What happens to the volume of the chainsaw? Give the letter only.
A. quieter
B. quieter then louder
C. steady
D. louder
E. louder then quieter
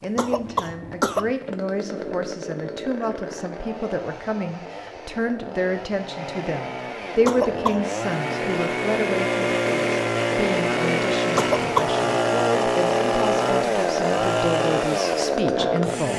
D.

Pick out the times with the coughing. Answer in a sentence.
The coughing can be heard from 0.1 to 1.3 s, from 7.2 to 7.8 s and from 11.3 to 11.9 s.